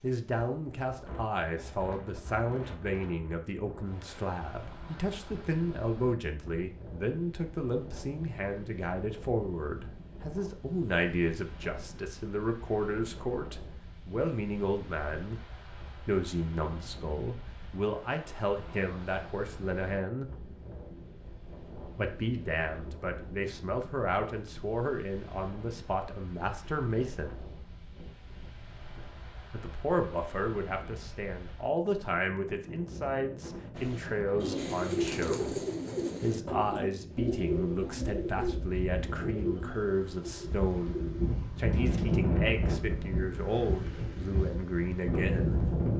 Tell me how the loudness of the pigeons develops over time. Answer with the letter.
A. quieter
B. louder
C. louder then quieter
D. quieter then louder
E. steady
A.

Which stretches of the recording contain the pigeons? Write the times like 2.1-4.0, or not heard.
33.8-42.2.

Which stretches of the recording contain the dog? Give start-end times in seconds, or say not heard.
not heard.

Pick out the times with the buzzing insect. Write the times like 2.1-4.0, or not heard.
not heard.